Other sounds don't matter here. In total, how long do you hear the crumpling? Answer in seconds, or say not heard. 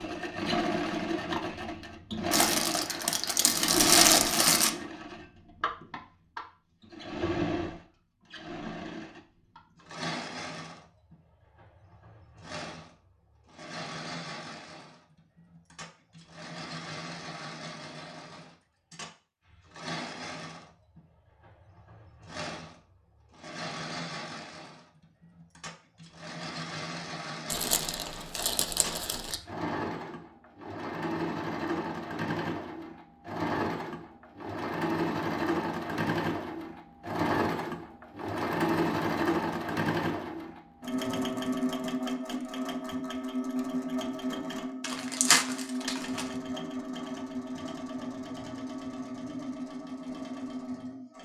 6 s.